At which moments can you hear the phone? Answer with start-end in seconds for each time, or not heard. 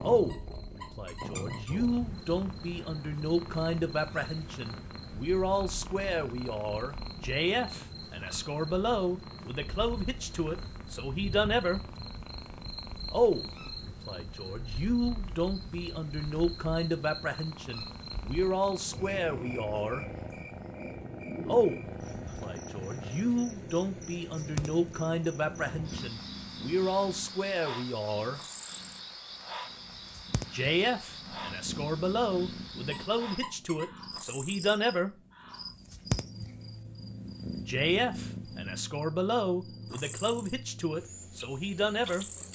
not heard.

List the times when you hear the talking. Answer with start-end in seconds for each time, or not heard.
0.0-11.8, 13.1-20.1, 21.4-28.4, 30.5-35.1, 37.6-42.2.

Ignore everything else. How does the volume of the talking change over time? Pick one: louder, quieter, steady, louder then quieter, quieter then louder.
steady.